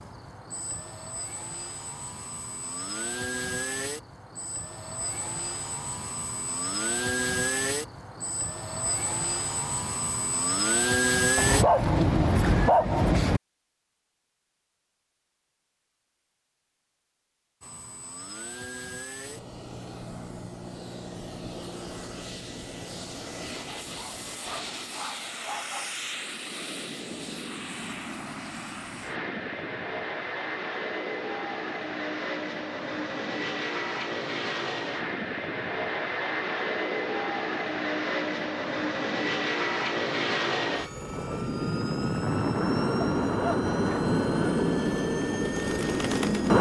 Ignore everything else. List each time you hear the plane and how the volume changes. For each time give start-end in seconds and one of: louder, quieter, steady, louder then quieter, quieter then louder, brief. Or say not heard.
0.0-11.7 louder
17.6-46.5 louder.